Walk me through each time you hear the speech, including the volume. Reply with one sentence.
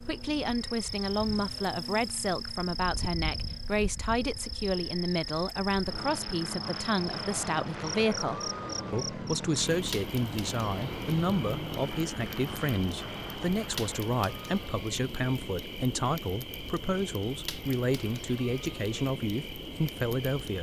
You can hear the speech from 0.1 to 20.5 s, at a steady volume.